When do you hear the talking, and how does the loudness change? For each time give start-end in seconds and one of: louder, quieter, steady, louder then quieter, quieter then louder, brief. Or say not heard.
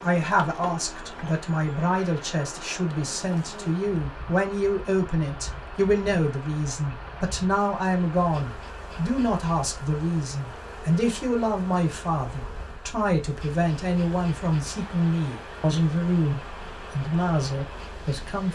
0.0-18.4 steady.